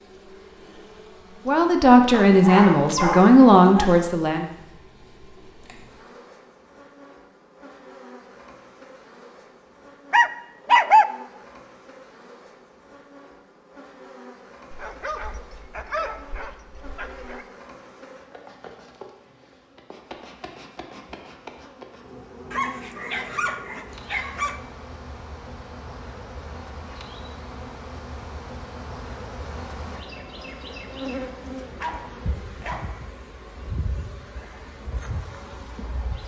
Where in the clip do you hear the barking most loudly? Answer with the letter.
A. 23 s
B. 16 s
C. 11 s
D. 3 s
C.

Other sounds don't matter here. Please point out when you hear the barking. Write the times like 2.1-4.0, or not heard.
2.2-4.0, 10.1-11.1, 14.7-17.4, 22.5-24.6, 31.8-33.0.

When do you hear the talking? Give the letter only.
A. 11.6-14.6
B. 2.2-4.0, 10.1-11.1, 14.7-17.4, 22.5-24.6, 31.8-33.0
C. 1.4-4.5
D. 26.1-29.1
C.